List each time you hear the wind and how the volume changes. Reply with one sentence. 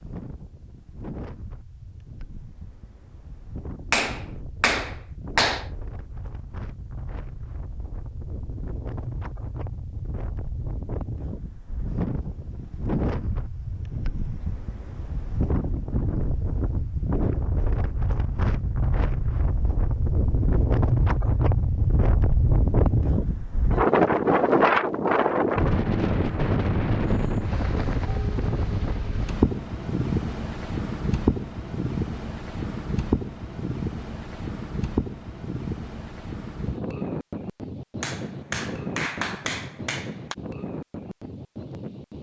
You can hear the wind from 0.0 to 42.1 s, getting louder then quieter.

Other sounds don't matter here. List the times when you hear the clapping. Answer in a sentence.
The clapping can be heard from 3.9 to 5.7 s and from 38.0 to 40.4 s.